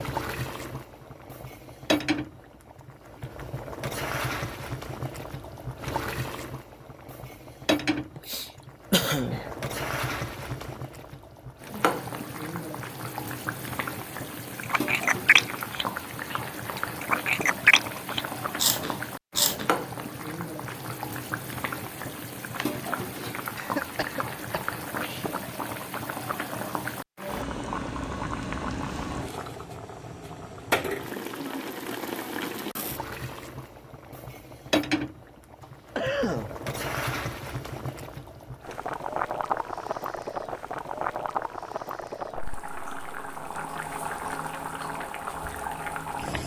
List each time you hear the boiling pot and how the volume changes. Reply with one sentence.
You can hear the boiling pot from 0.0 to 46.4 s, at a steady volume.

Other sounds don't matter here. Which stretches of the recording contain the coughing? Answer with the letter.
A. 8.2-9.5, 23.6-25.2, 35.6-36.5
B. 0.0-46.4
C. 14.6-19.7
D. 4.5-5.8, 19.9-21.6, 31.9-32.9
A.